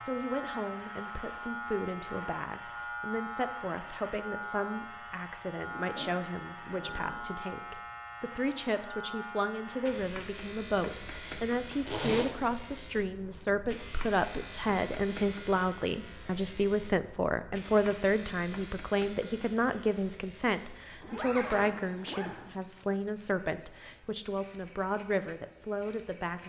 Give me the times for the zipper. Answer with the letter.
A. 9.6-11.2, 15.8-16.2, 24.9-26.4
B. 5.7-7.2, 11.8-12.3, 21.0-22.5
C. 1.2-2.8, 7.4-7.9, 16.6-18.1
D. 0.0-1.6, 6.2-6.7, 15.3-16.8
B.